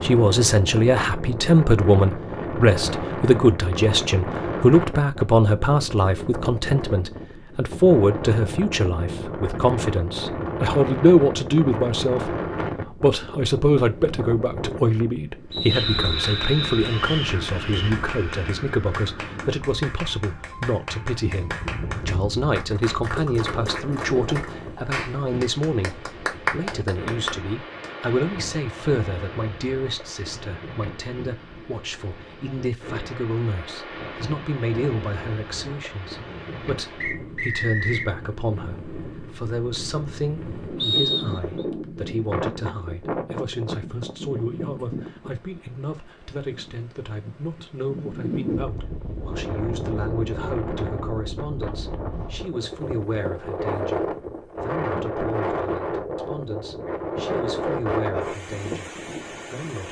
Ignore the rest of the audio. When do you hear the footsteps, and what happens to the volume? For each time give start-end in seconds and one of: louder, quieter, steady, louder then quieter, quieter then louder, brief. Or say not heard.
not heard.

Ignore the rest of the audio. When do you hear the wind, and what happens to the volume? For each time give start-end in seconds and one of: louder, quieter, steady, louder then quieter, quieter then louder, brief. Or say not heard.
0.0-59.8 quieter then louder.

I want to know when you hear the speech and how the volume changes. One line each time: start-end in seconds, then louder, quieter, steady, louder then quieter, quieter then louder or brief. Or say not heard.
0.0-59.8 quieter.